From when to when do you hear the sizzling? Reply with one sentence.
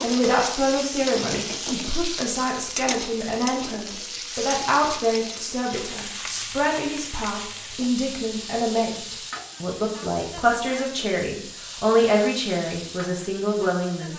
You can hear the sizzling from 0.0 to 14.1 s.